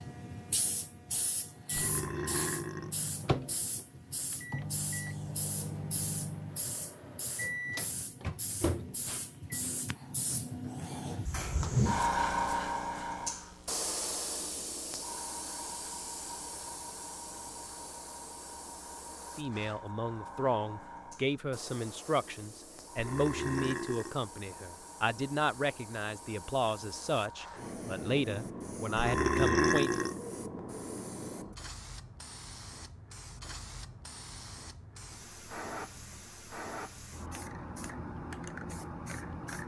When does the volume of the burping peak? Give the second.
30 s.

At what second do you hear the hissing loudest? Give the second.
12 s.